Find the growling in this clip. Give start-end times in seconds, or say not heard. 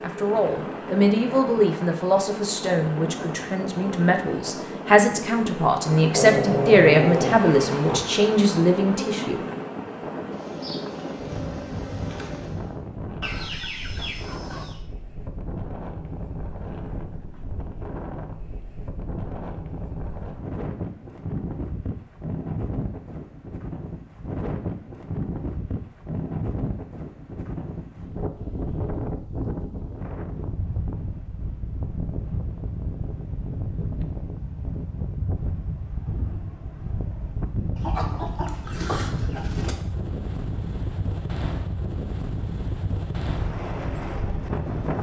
6.0-8.0.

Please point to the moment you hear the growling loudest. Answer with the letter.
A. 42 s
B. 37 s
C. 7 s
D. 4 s
C.